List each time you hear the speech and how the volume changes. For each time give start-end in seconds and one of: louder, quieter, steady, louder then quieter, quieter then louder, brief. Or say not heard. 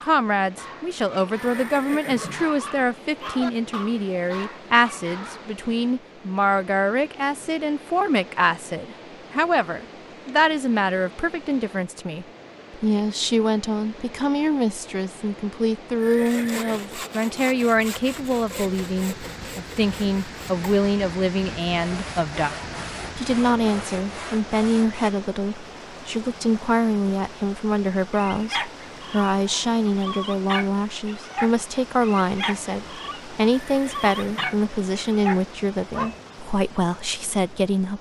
0.1-37.9 steady.